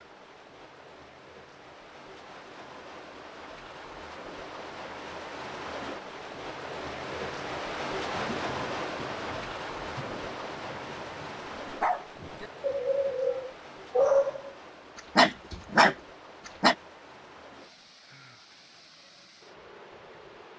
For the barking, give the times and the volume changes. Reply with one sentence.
You can hear the barking from 11.7 to 16.8 s, getting louder.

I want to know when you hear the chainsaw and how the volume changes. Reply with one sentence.
You can't hear the chainsaw here.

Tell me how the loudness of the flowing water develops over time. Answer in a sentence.
The loudness of the flowing water goes up, then down.